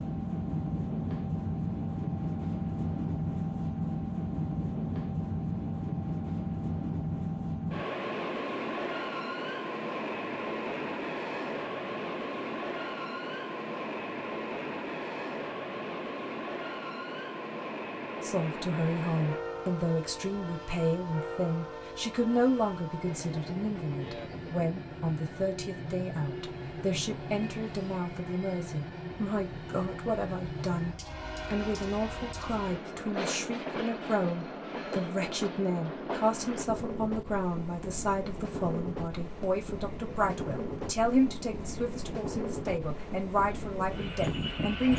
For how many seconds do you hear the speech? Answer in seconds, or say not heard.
27 s.